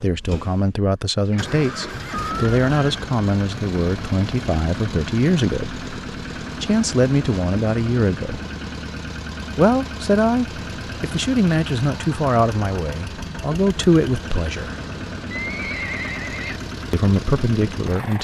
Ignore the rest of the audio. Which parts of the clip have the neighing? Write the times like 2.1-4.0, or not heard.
1.3-3.1, 15.3-16.6.